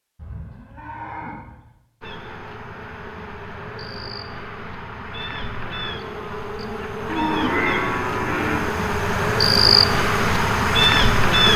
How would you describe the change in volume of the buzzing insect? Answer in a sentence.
The volume of the buzzing insect goes up.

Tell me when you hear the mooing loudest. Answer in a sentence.
The volume of the mooing peaks at 8 seconds.